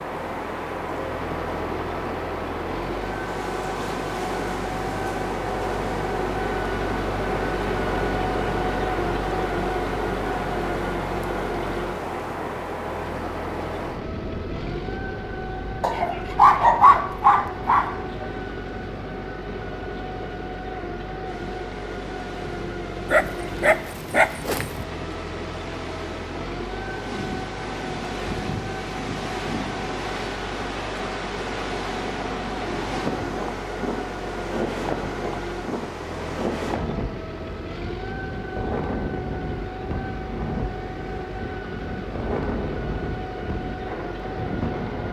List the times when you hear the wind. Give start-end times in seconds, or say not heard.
0.0-45.0.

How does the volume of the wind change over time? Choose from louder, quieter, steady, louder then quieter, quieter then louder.
quieter then louder.